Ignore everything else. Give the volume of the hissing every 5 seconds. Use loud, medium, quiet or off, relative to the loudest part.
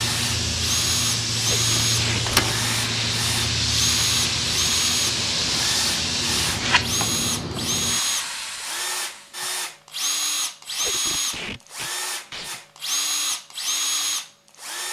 loud, loud, off.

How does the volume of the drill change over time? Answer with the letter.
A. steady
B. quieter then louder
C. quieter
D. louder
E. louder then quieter
A.